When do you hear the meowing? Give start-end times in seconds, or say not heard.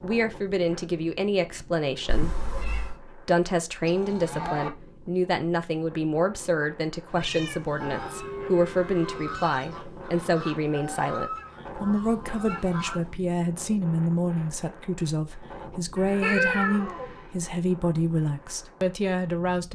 2.0-3.0, 7.1-7.8, 16.2-17.1.